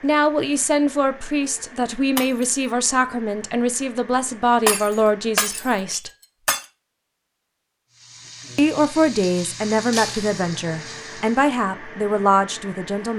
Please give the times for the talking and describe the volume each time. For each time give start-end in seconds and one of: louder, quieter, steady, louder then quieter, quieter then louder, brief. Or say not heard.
0.0-6.1 steady
8.6-13.1 quieter then louder.